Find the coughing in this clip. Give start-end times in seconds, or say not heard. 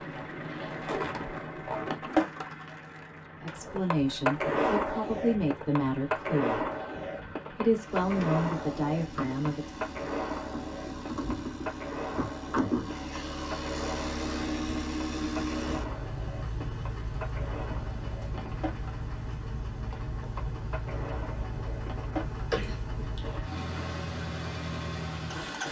22.5-23.4.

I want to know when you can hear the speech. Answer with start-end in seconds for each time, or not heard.
3.4-6.7, 7.5-9.7.